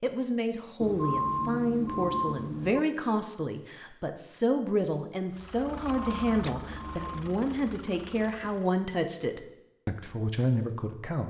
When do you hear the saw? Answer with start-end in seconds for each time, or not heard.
not heard.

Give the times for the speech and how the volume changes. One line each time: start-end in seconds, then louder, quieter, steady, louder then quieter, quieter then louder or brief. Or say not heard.
0.0-11.2 steady.